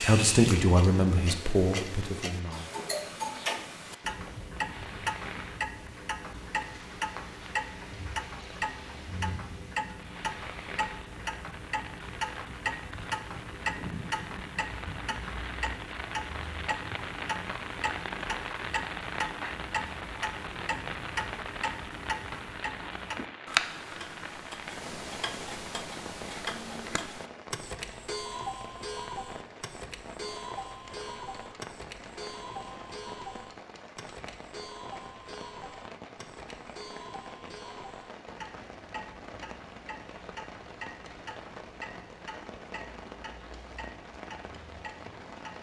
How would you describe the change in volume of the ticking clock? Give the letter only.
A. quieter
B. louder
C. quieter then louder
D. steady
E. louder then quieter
A.